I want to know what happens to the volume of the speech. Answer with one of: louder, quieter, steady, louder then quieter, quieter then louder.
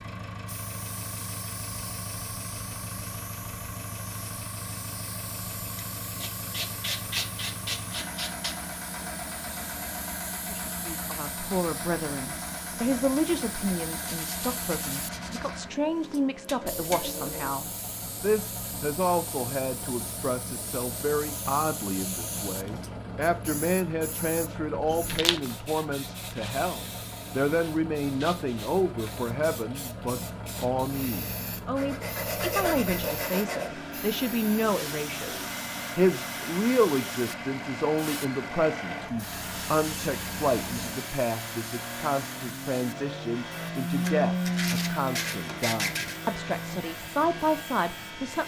steady.